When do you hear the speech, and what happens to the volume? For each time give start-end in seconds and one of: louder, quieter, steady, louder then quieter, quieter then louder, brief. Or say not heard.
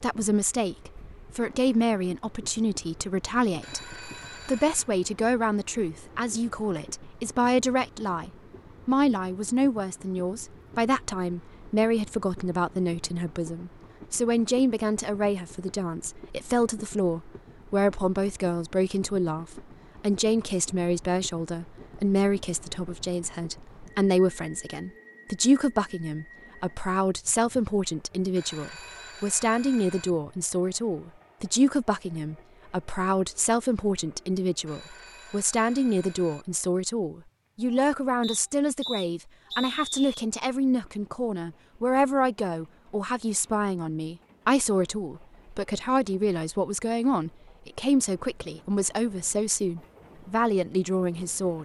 0.0-51.5 steady.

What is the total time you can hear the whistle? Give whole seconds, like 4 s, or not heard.
2 s.